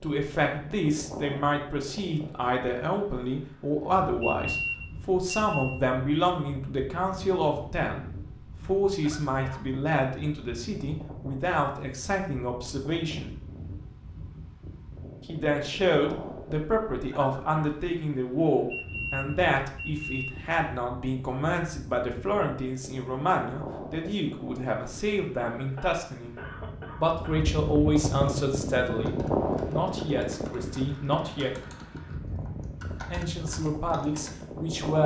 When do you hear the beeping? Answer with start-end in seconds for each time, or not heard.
4.2-5.8, 18.7-20.4.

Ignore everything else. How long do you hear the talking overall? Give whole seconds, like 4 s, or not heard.
30 s.